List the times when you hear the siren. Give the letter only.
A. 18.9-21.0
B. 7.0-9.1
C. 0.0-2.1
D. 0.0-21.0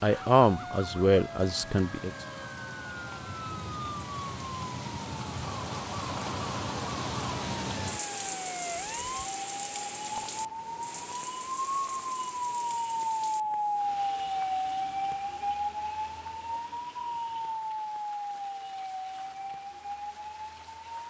D.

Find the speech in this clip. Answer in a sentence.
You can hear the speech from 0.0 to 2.1 s.